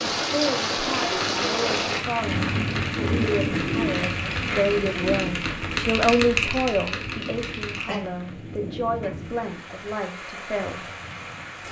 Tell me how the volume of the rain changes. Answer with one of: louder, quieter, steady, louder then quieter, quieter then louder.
quieter.